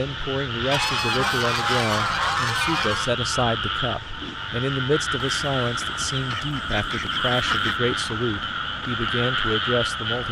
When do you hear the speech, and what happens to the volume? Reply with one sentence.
You can hear the speech from 0.0 to 10.2 s, at a steady volume.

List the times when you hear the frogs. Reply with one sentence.
You can hear the frogs from 0.0 to 10.2 s.